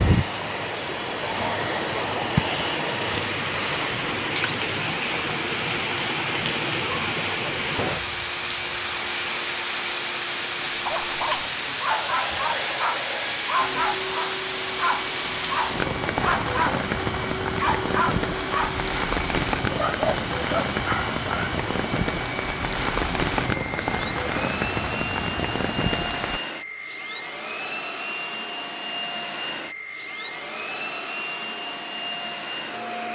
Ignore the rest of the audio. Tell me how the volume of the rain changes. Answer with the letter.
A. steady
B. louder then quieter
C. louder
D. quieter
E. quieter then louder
A.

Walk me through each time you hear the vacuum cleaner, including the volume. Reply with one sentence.
You can hear the vacuum cleaner from 0.0 to 33.0 s, at a steady volume.